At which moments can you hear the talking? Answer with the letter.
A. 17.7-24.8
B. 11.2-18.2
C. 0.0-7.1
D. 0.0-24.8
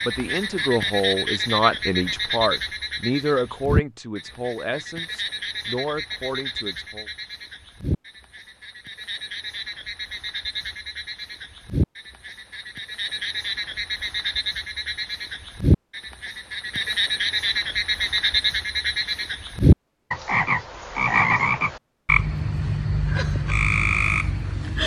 C.